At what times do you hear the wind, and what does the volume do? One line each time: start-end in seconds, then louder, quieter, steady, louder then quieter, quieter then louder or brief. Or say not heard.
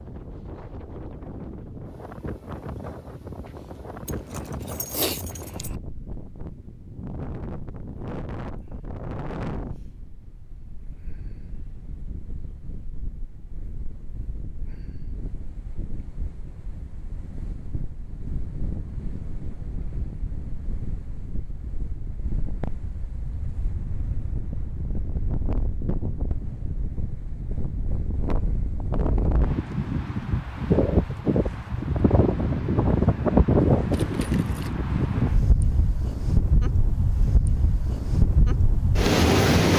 0.0-39.7 louder.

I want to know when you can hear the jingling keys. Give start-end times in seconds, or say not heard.
4.0-5.8, 33.9-34.8.